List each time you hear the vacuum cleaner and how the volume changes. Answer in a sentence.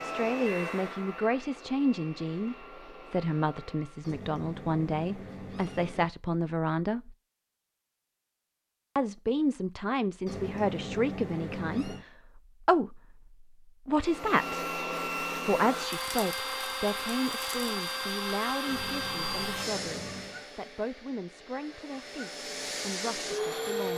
The vacuum cleaner can be heard from 0.0 to 4.2 s, getting quieter; and from 13.9 to 23.9 s, getting quieter then louder.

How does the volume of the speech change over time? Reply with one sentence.
The loudness of the speech goes down.